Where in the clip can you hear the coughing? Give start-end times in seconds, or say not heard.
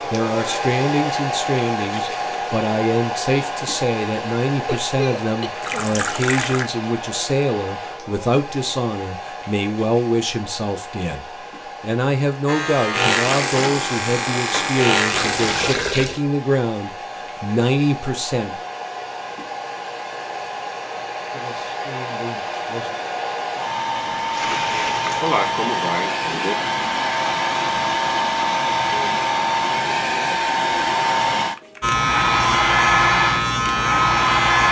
4.7-5.9, 25.1-26.6.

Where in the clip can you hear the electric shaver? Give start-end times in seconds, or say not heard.
12.4-15.8, 31.8-34.6.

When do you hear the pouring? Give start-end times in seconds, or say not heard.
5.6-6.7, 15.1-16.2, 24.1-25.4.